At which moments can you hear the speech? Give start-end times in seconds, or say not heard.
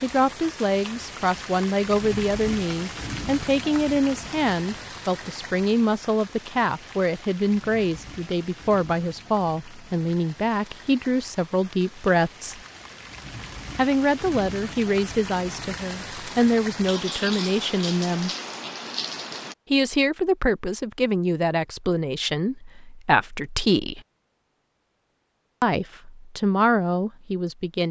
0.0-12.6, 13.8-18.3, 19.7-24.0, 25.6-27.8.